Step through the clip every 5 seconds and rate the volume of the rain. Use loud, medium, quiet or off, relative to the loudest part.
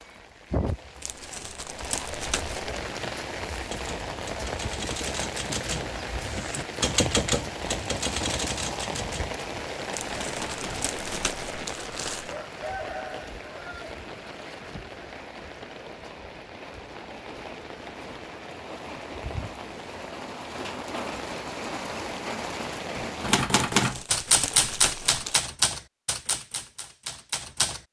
loud, loud, loud, medium, loud, off.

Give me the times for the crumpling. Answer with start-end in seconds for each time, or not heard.
1.0-2.7, 9.9-12.3, 23.7-25.4.